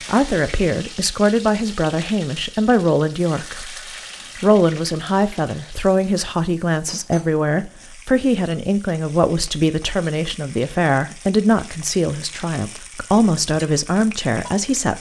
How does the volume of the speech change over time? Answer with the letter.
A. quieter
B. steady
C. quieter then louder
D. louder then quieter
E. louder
B.